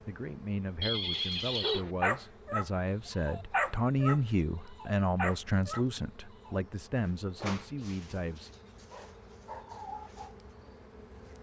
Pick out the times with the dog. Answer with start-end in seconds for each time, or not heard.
1.1-2.6, 3.2-5.8, 6.5-10.3.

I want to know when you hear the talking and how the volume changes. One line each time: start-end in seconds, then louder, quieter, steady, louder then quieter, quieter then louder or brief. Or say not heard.
0.1-8.5 louder then quieter.